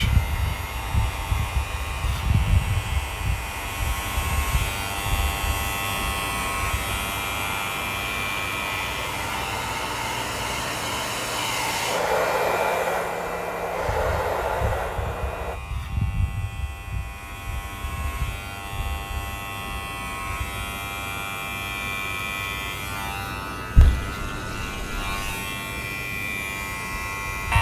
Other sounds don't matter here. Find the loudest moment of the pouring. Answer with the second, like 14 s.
24 s.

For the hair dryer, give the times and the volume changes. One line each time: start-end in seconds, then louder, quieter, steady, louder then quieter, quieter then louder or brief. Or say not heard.
0.0-15.6 louder.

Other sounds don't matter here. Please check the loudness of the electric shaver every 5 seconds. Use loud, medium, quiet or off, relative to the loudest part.
loud, loud, medium, medium, loud, loud.